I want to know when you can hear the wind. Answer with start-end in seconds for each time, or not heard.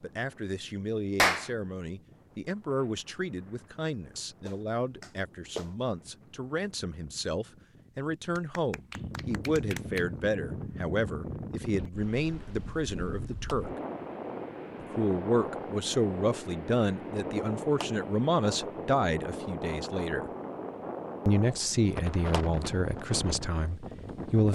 0.0-24.5.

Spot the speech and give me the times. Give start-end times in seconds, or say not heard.
0.0-13.7, 14.8-20.3, 21.2-24.5.